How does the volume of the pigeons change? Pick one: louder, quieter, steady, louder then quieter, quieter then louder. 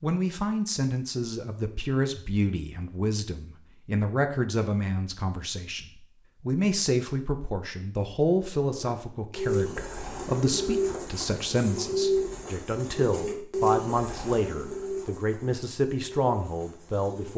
quieter.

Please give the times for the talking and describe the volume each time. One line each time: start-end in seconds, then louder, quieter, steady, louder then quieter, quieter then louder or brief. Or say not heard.
0.0-17.3 steady.